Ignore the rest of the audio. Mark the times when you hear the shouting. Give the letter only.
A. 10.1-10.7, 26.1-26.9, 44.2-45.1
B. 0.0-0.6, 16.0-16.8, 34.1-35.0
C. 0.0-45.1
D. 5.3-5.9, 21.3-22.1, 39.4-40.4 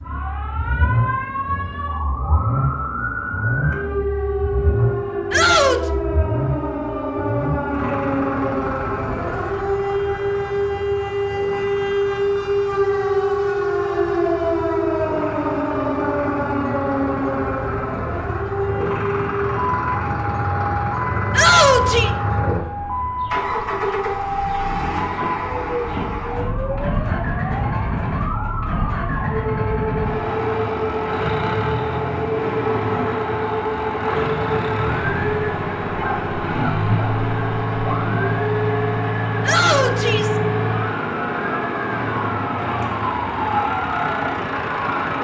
D.